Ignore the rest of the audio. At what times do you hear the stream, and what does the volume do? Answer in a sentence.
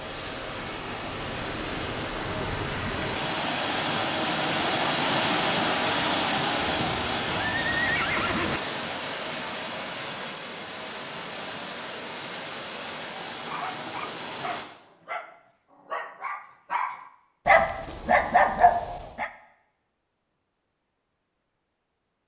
The stream can be heard from 0.0 to 14.7 s, getting louder then quieter.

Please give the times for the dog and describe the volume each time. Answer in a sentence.
You can hear the dog from 13.4 to 19.3 s, getting louder.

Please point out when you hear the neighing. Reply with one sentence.
The neighing can be heard from 6.7 to 8.6 s.